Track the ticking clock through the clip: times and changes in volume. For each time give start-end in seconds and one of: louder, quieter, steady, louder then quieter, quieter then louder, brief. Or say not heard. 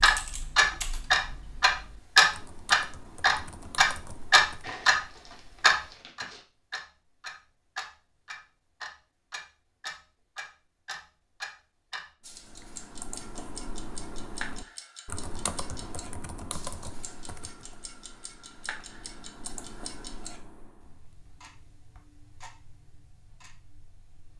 0.0-24.3 quieter.